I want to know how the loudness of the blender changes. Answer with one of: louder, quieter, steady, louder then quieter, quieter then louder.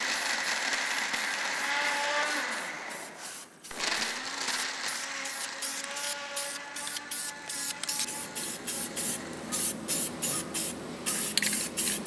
quieter.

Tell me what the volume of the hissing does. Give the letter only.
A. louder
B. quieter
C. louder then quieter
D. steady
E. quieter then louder
A.